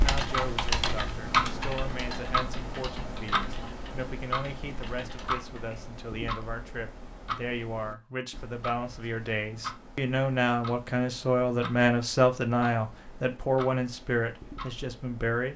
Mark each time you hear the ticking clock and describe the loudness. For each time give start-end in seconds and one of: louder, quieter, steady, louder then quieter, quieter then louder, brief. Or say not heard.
0.0-15.5 quieter.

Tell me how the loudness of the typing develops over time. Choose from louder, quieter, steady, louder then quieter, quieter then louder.
quieter.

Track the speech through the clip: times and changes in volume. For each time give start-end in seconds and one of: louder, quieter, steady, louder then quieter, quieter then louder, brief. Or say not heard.
0.0-15.5 louder.